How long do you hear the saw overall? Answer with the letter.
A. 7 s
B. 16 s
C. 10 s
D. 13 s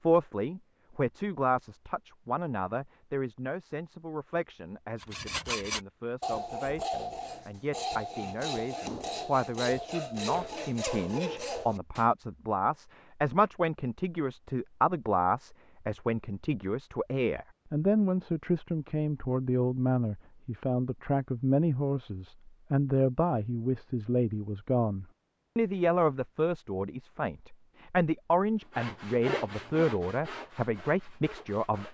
C.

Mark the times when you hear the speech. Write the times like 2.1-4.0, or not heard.
0.0-31.8.